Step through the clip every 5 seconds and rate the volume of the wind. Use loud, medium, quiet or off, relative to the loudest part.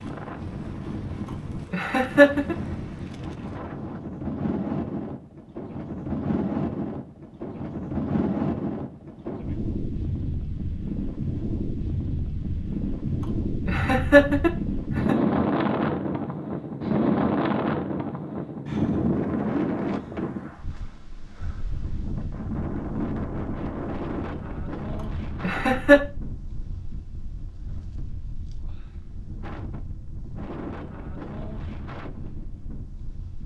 medium, medium, medium, loud, medium, quiet, quiet.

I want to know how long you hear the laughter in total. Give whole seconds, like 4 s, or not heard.
3 s.